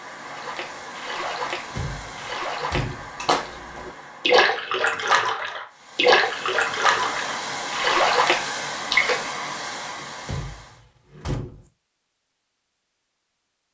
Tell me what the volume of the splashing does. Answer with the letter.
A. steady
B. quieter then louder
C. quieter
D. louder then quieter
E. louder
E.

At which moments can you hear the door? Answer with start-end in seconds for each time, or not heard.
1.4-3.1, 9.9-11.7.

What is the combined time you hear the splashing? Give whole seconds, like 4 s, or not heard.
9 s.